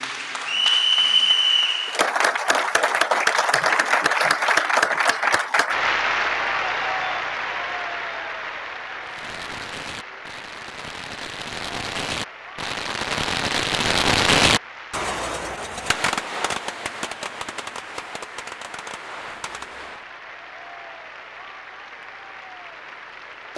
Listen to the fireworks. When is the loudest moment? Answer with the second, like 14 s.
14 s.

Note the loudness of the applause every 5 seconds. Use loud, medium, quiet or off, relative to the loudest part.
loud, medium, quiet, quiet, quiet.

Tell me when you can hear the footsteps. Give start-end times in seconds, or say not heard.
not heard.